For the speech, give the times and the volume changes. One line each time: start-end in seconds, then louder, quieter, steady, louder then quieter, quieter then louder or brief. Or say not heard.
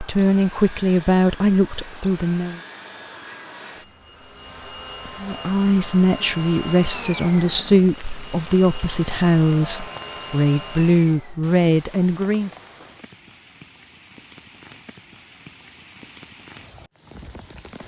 0.0-2.6 brief
5.2-12.5 steady.